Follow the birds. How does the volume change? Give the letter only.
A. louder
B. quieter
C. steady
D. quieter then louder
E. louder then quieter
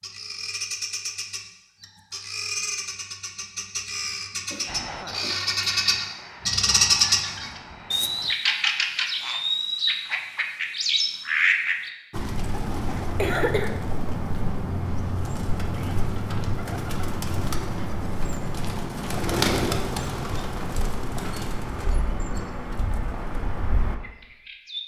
E.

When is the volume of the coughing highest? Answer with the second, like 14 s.
13 s.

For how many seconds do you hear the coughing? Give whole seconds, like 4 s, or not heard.
2 s.